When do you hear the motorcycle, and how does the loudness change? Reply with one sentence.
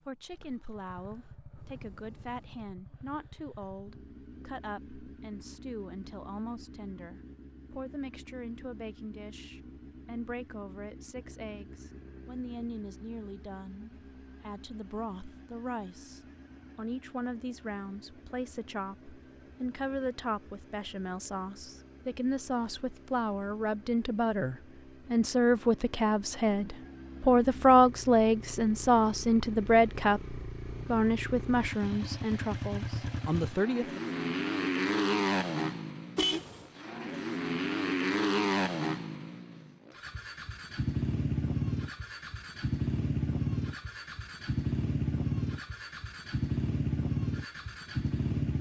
The motorcycle can be heard from 0.0 to 48.5 s, getting louder.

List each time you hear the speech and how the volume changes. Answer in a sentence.
The speech can be heard from 0.1 to 34.0 s, getting louder.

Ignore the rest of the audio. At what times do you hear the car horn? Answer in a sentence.
You can hear the car horn from 36.1 to 36.6 s.